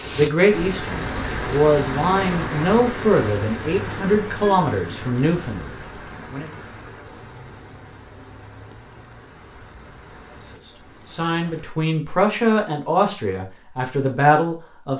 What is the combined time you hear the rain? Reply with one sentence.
The rain can be heard for 12 seconds in total.